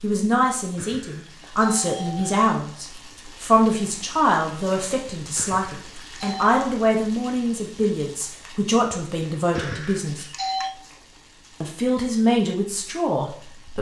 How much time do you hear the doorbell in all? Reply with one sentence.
You can hear the doorbell for 4 seconds altogether.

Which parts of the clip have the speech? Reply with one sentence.
The speech can be heard from 0.0 to 10.2 s and from 11.6 to 13.7 s.